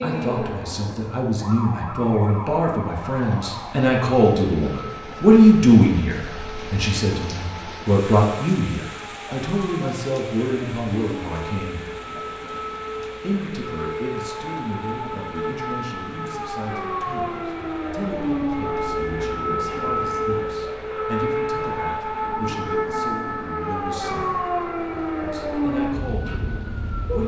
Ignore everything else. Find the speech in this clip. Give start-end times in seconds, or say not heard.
0.0-11.8, 13.2-24.4, 25.2-27.2.